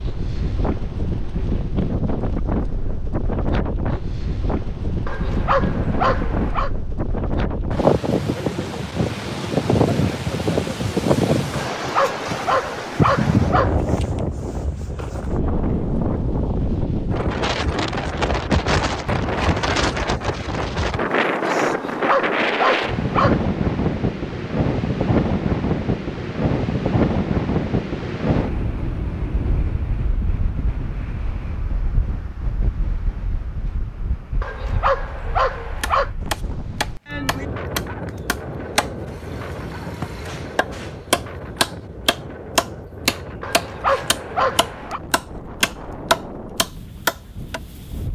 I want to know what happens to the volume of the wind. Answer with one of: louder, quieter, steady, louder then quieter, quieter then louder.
quieter.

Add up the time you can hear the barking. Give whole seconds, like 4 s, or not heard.
9 s.